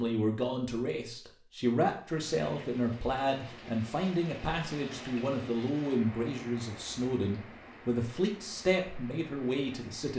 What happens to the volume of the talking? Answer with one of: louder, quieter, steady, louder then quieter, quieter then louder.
steady.